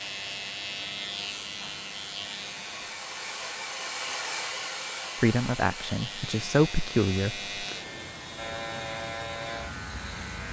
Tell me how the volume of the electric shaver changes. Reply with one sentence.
The volume of the electric shaver goes down, then up.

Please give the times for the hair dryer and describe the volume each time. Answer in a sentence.
You can hear the hair dryer from 0.0 to 10.4 s, getting louder then quieter.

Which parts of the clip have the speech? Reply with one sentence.
You can hear the speech from 5.2 to 7.4 s.